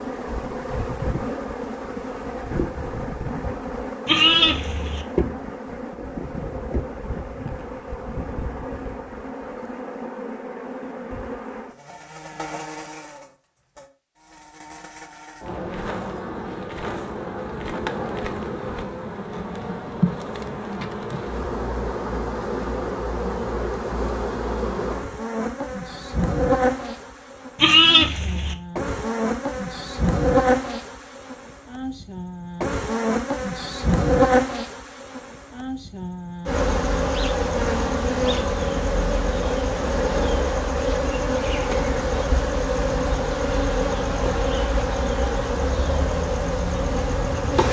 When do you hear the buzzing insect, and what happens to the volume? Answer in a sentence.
The buzzing insect can be heard from 0.0 to 47.6 s, getting louder.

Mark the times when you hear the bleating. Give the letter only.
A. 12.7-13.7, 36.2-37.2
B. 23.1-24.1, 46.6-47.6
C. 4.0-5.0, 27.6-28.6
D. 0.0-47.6
C.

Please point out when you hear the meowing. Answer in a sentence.
The meowing can't be heard in this clip.